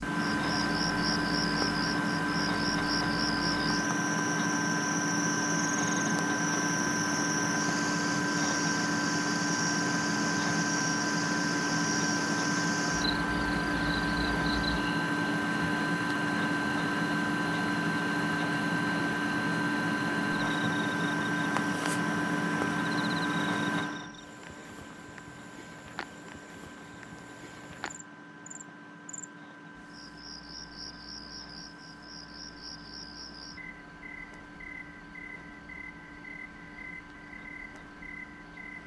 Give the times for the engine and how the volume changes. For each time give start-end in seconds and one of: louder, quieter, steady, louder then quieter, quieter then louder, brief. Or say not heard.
0.0-38.8 quieter.